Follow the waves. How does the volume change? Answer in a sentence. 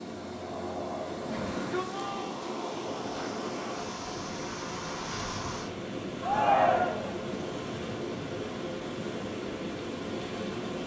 The volume of the waves stays about the same.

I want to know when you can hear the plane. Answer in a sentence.
The plane can't be heard in this clip.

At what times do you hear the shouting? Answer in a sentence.
The shouting can be heard from 1.4 to 2.4 s and from 6.2 to 7.2 s.